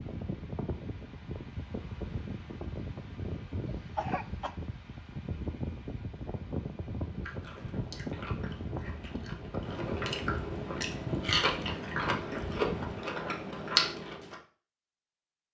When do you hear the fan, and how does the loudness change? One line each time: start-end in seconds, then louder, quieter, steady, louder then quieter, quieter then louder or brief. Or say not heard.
0.0-13.0 steady.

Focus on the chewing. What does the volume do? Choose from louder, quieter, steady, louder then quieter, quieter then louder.
louder.